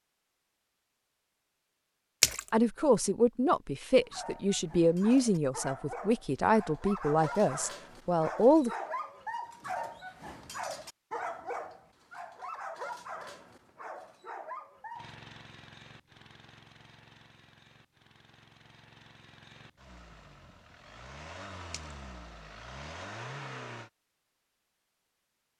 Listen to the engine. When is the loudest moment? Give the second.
23 s.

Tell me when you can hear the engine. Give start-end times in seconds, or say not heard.
14.9-23.9.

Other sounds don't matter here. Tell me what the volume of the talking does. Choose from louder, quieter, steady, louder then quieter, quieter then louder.
steady.